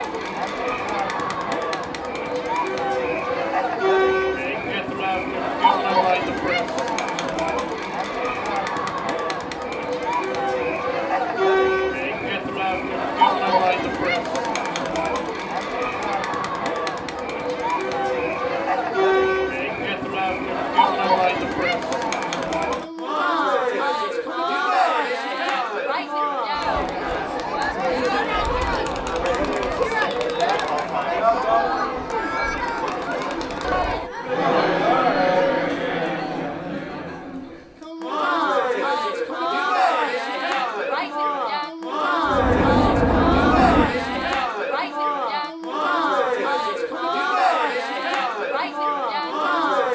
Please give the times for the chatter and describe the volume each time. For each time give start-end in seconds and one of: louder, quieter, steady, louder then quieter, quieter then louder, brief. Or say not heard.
0.0-49.9 steady.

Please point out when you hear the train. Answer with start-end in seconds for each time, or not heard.
42.2-44.5.